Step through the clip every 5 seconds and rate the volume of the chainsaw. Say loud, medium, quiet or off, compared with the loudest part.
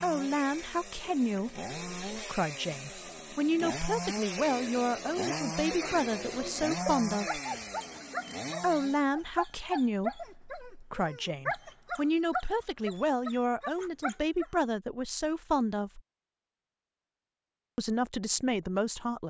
loud, loud, off, off.